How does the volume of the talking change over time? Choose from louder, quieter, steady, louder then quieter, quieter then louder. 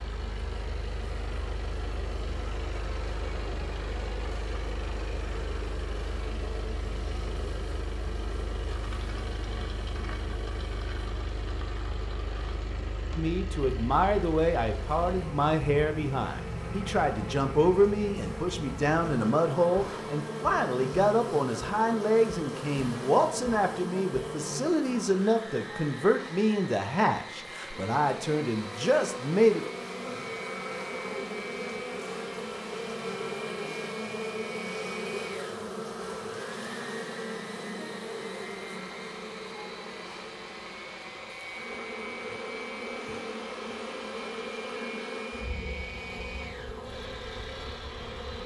steady.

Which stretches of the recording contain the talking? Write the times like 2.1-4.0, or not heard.
13.2-29.6.